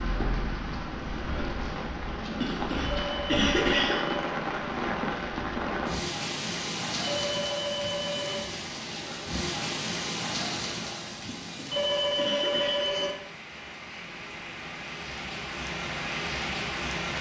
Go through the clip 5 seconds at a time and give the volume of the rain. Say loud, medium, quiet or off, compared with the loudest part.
loud, loud, medium, loud.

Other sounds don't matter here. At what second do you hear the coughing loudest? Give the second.
4 s.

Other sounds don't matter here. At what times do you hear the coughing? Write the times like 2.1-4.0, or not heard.
2.4-4.2, 11.2-12.8.